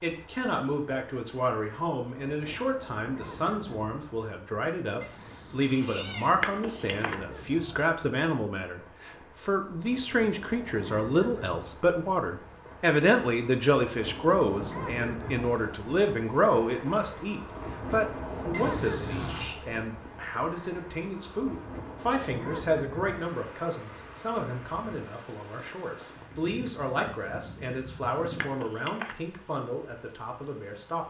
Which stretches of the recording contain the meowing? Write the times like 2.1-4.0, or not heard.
5.0-6.3, 18.5-19.6.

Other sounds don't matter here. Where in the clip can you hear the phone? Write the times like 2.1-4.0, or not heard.
6.4-7.2, 28.4-29.1.